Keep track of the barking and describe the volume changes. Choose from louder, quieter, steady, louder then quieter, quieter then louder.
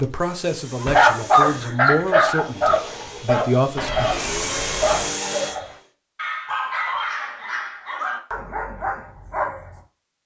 quieter.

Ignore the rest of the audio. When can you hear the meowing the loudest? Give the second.
4 s.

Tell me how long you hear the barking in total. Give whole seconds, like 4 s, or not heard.
9 s.